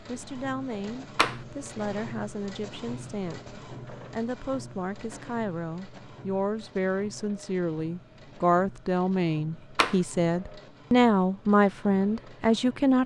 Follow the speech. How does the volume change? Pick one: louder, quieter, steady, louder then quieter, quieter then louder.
louder.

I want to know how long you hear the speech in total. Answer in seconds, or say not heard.
13 s.